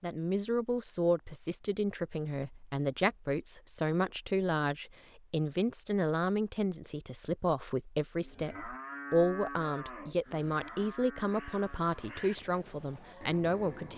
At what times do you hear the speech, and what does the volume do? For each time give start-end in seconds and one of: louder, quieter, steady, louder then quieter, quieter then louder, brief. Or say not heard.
0.0-13.9 steady.